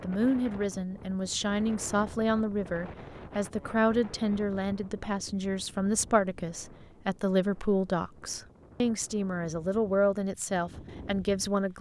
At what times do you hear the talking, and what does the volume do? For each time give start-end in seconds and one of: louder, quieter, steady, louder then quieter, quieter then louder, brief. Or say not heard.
0.0-11.7 steady.